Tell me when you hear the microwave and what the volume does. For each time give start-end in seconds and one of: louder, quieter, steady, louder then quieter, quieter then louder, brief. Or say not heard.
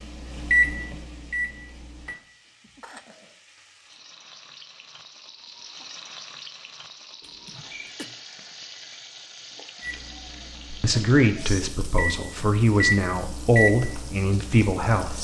0.0-2.1 brief
9.8-15.1 louder then quieter.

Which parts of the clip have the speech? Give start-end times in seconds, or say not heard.
10.7-15.1.